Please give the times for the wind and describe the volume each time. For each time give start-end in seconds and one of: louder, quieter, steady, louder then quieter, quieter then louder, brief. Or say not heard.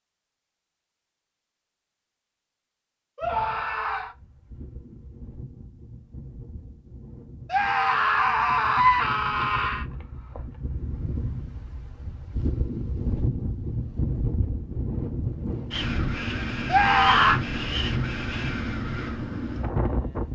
3.2-20.3 louder.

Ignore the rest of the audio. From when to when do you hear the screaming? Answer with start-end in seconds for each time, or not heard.
3.1-4.2, 7.5-9.8, 16.7-17.4.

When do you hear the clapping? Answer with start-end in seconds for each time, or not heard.
not heard.